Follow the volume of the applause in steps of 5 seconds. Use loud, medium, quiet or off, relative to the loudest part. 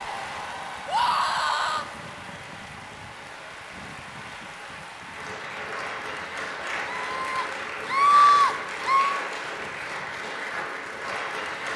medium, loud, loud.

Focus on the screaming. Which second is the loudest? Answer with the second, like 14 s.
8 s.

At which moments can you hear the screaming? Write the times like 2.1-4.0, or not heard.
0.8-1.9, 6.8-9.2.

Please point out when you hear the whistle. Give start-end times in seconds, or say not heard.
not heard.